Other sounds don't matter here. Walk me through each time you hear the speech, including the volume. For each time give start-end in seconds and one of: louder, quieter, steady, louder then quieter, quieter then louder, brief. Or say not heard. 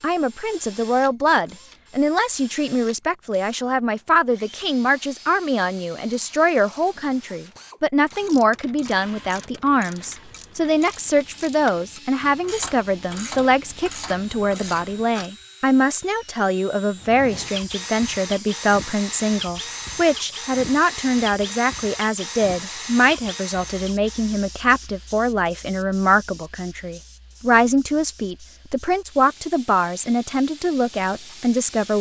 0.0-31.9 steady.